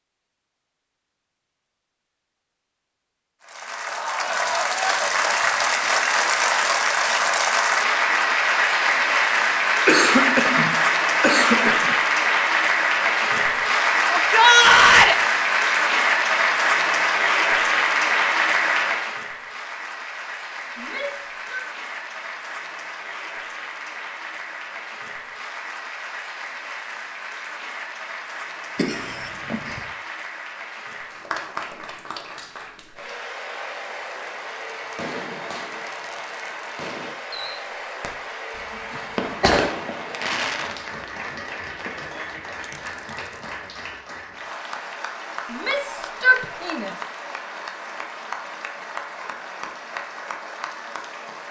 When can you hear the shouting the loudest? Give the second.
15 s.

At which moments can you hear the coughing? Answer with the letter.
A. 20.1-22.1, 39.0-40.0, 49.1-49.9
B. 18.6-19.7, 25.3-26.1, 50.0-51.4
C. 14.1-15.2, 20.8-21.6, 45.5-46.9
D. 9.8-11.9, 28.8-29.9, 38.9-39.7
D.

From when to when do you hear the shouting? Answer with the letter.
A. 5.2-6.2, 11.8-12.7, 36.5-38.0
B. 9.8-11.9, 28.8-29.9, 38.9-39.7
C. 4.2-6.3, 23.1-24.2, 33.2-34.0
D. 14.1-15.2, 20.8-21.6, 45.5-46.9
D.